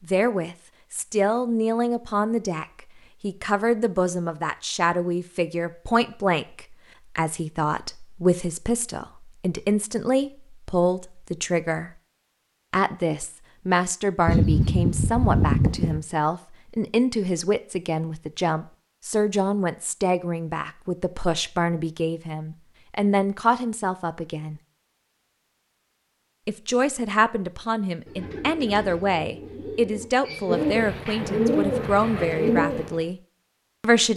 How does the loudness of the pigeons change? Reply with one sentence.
The volume of the pigeons goes up.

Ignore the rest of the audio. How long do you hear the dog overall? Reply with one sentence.
You can hear the dog for 2 seconds altogether.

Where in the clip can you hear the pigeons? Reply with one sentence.
The pigeons can be heard from 27.6 to 33.0 s.